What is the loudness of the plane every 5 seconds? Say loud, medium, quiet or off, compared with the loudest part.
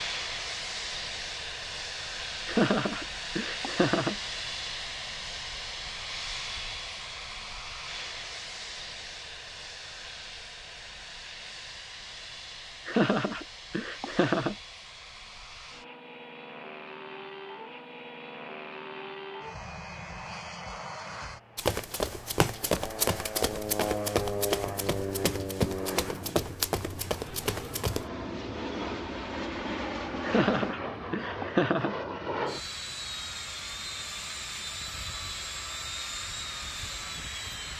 loud, loud, medium, medium, loud, loud, loud, loud.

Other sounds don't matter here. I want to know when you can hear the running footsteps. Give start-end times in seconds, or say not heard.
21.6-28.1.